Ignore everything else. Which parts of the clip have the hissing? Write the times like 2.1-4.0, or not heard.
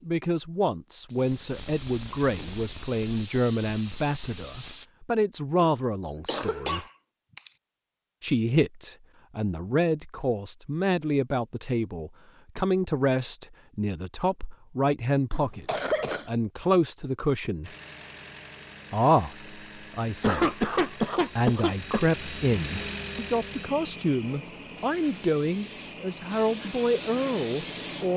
0.0-4.8, 24.2-28.1.